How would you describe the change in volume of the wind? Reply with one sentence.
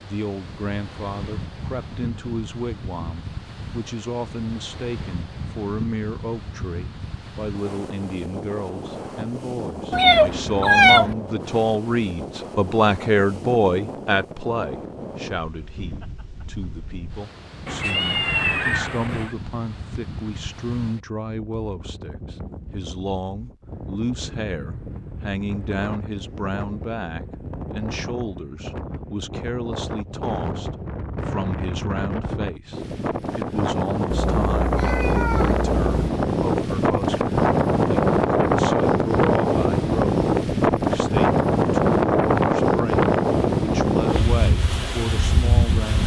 The volume of the wind goes up.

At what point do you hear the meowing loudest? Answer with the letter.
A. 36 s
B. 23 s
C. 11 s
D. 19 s
C.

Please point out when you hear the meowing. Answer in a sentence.
The meowing can be heard from 9.9 to 11.2 s, from 17.6 to 19.4 s and from 34.1 to 36.1 s.